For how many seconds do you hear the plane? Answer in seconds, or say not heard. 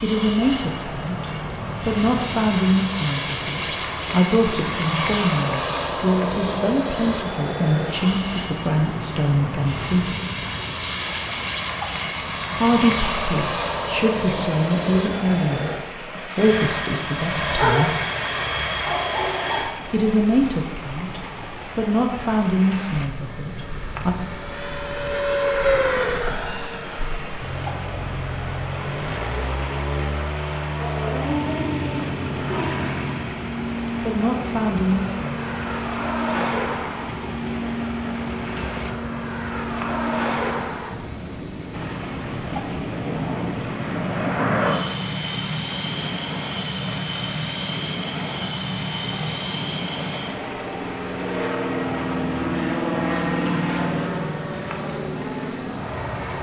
56 s.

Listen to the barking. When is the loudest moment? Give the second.
18 s.